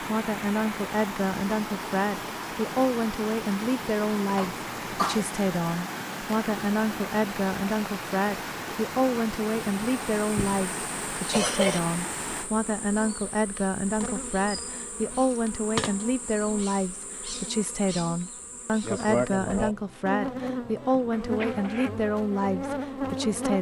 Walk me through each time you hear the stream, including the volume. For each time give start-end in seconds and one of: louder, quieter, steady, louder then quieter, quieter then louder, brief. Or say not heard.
0.0-12.5 steady.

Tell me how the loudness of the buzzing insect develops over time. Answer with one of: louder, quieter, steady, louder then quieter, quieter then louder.
louder.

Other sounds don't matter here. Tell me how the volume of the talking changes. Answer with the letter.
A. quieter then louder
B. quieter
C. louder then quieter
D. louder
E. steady
E.